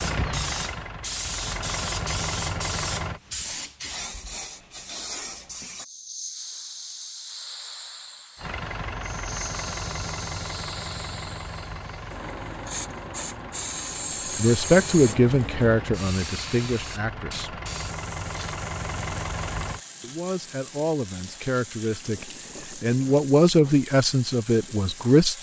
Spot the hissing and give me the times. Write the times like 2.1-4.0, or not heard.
0.0-25.3.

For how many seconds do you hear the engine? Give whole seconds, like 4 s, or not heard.
15 s.